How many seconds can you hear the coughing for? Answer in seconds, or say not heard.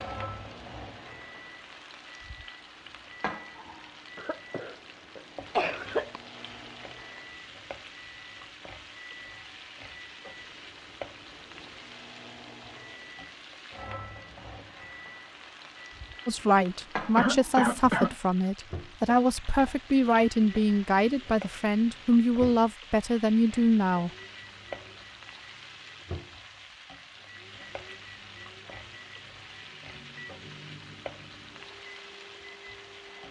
3 s.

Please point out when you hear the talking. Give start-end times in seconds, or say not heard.
16.2-24.1.